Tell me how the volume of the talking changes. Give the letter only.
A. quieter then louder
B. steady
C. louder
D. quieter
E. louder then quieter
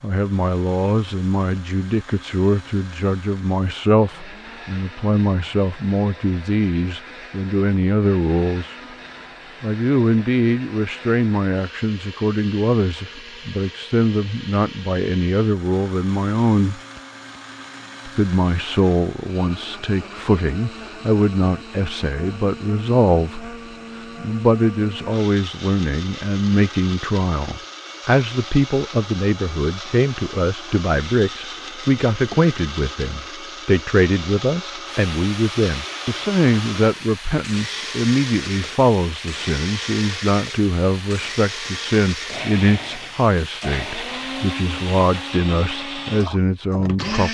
B.